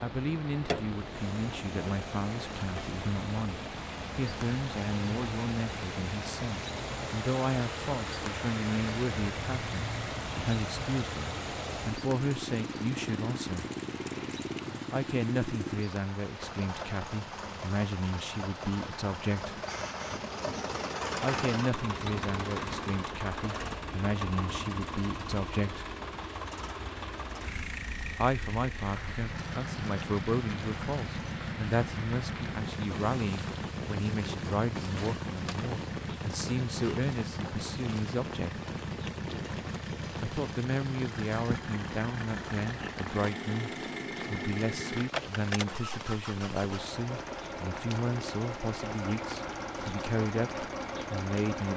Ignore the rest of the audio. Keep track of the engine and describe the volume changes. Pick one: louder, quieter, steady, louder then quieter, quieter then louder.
steady.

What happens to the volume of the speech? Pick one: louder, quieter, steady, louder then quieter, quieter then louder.
steady.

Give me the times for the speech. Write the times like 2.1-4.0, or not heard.
0.0-13.7, 14.9-19.6, 21.2-25.9, 28.1-38.6, 40.2-51.7.